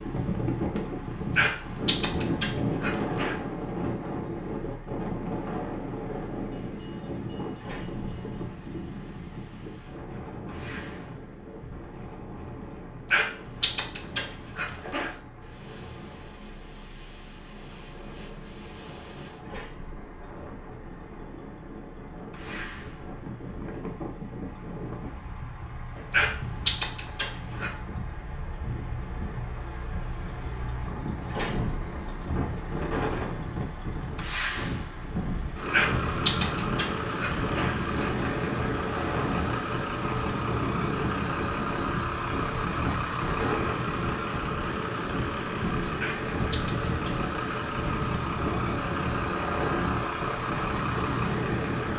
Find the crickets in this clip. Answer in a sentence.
The crickets can't be heard in this clip.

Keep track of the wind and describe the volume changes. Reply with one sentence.
The loudness of the wind goes down, then up.